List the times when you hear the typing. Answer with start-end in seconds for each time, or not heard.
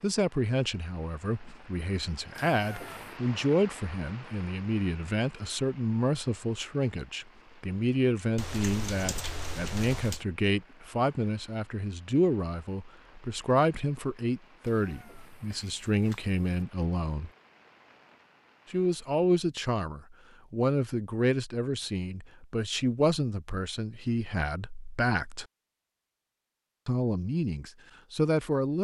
8.3-10.2.